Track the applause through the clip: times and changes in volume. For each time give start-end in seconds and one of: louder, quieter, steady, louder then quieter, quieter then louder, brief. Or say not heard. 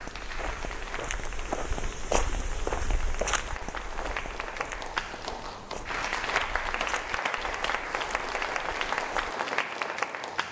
0.0-10.4 louder.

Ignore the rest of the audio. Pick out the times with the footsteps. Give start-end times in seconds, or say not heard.
0.0-9.3.